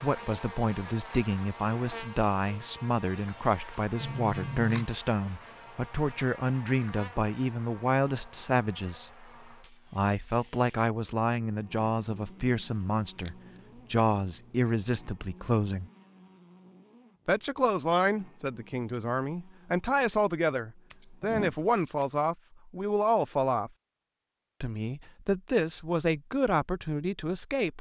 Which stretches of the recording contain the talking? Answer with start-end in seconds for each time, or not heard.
0.0-9.2, 9.9-15.9, 17.2-23.7, 24.6-27.7.